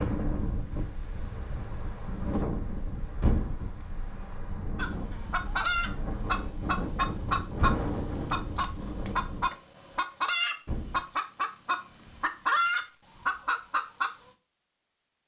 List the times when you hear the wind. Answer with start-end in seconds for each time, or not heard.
0.0-9.5.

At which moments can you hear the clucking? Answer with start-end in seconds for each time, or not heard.
4.8-14.1.